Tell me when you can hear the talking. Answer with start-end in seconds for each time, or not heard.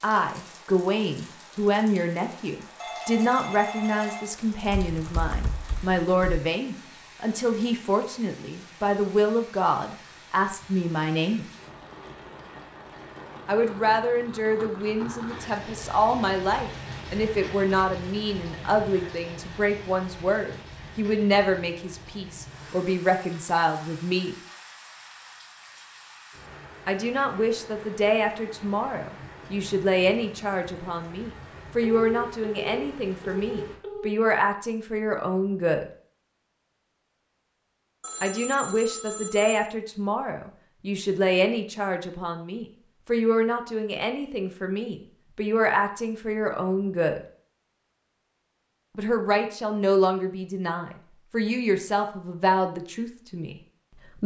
0.0-11.5, 13.4-24.4, 26.9-35.9, 38.2-47.2, 49.0-54.2.